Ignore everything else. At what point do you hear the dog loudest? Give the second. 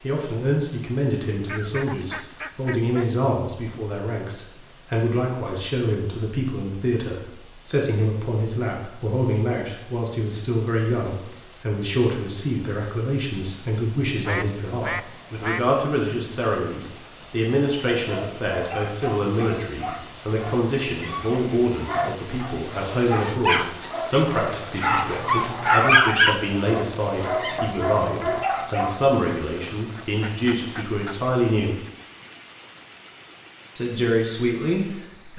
26 s.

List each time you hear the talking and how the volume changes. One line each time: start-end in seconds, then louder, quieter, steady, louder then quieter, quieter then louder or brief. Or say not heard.
0.0-31.8 steady
33.8-35.3 brief.